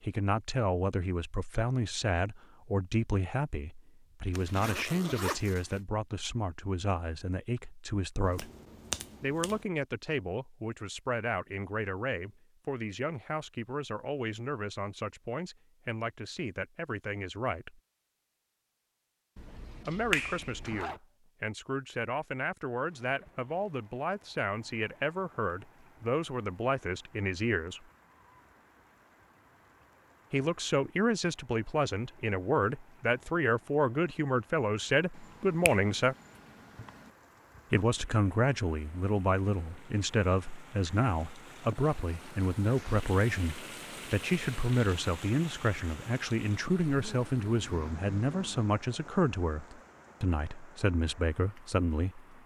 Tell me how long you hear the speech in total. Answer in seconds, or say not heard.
46 s.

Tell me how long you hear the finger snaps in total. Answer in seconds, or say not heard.
5 s.